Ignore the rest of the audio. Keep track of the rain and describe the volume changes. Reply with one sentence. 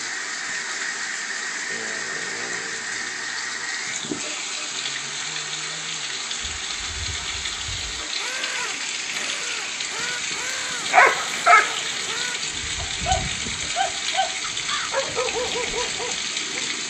The loudness of the rain stays about the same.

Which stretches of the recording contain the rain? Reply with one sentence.
The rain can be heard from 0.0 to 16.8 s.